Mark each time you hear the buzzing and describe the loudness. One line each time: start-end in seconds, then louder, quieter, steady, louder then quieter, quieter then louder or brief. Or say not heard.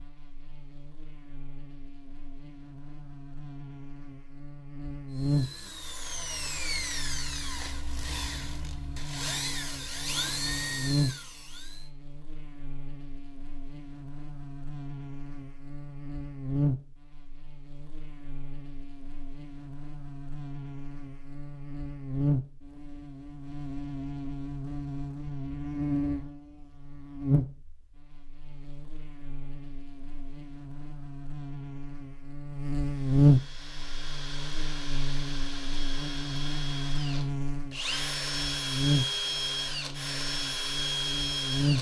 0.0-41.7 louder.